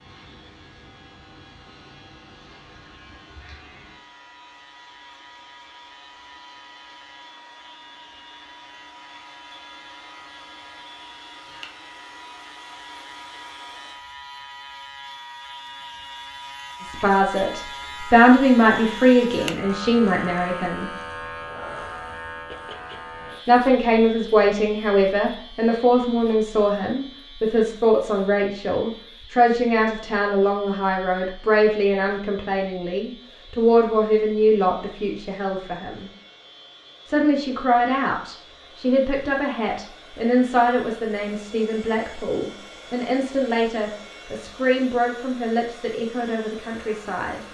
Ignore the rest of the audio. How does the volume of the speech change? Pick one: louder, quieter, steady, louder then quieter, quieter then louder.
quieter.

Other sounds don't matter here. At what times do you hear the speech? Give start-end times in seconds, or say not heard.
16.8-20.9, 23.4-36.1, 37.0-47.4.